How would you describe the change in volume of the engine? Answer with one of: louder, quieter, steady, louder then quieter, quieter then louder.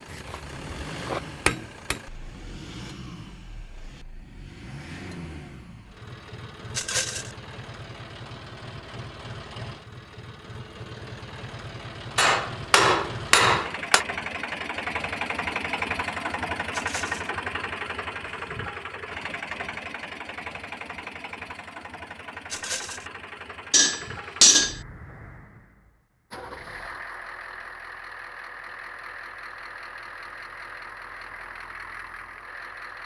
louder then quieter.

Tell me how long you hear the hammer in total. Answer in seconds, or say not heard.
5 s.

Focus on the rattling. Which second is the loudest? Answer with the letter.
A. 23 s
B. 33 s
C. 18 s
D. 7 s
D.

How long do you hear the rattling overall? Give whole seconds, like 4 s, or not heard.
2 s.